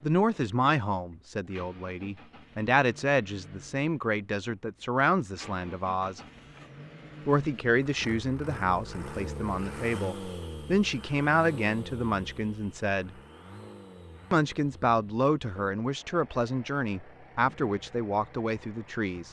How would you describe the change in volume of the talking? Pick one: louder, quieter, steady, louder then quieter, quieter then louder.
steady.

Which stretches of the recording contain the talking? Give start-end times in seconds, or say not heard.
0.0-6.2, 7.2-13.2, 14.3-19.2.